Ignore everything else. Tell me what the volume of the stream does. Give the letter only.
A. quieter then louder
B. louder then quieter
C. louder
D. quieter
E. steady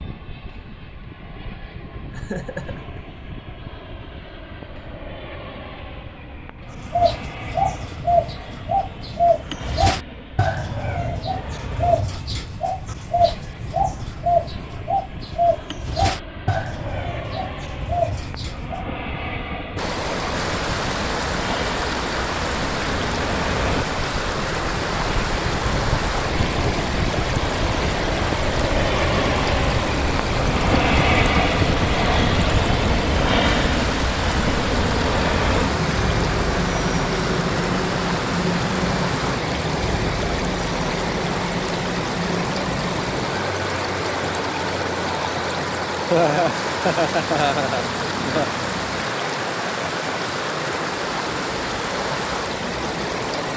E.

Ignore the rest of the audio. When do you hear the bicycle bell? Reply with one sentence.
You can't hear the bicycle bell here.